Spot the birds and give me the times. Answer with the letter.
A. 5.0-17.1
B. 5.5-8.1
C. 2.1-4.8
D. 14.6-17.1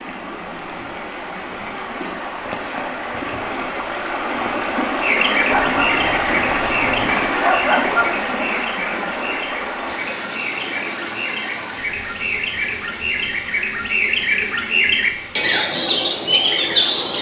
A.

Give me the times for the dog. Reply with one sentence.
You can hear the dog from 5.5 to 8.1 s.